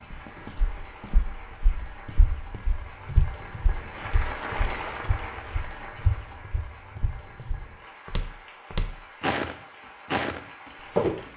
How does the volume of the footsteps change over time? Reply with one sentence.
The volume of the footsteps goes up.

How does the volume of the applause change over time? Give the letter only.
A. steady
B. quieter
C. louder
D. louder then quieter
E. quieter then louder
D.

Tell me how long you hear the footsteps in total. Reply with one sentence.
The footsteps can be heard for 11 seconds in total.